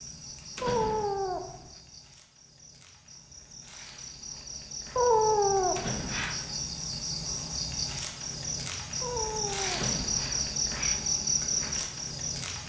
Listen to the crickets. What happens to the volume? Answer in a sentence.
The volume of the crickets goes up.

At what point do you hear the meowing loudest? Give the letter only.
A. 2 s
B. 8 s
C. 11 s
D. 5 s
D.